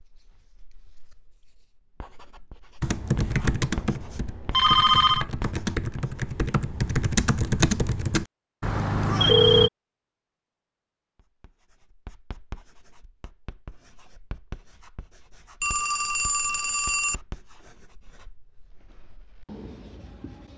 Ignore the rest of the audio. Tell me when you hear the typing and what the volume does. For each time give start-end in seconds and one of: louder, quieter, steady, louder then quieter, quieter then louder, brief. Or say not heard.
2.8-8.2 quieter then louder.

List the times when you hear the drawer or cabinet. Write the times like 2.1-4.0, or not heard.
not heard.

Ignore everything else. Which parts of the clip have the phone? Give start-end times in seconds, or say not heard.
4.5-5.2, 8.6-9.7, 15.6-17.1.